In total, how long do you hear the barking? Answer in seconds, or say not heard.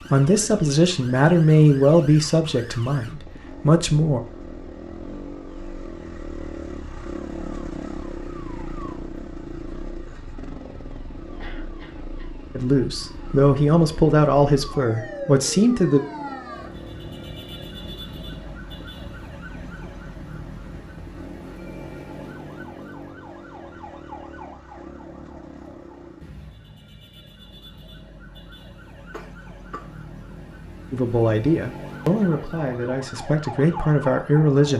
not heard.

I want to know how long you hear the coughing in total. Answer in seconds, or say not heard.
2 s.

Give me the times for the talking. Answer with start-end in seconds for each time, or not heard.
0.1-4.2, 12.6-16.0, 30.9-34.7.